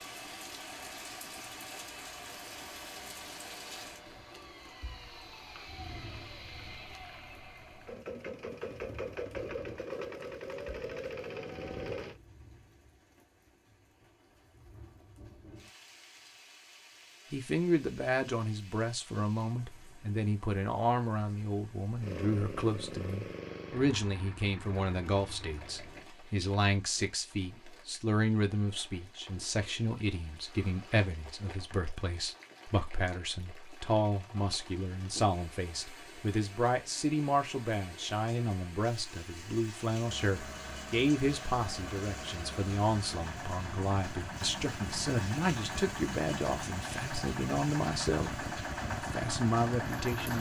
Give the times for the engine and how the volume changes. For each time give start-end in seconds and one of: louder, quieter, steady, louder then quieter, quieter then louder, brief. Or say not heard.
0.0-12.2 louder
22.0-26.1 quieter
40.0-50.3 louder.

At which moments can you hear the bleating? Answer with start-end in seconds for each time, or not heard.
not heard.